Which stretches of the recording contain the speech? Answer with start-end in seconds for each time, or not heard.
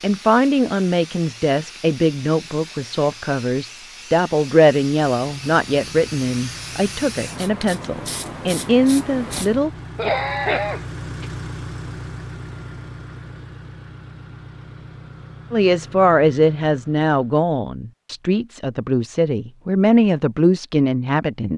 0.0-9.7, 15.5-21.5.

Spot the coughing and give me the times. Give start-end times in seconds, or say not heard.
9.3-11.2.